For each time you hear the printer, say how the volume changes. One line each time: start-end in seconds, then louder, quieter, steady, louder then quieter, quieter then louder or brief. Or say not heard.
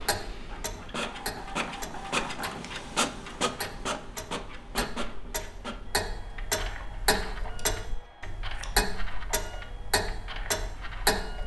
0.0-11.4 quieter.